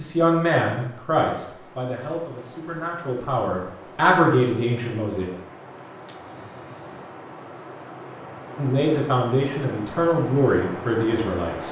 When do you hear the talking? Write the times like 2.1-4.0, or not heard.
0.0-5.3, 8.6-11.6.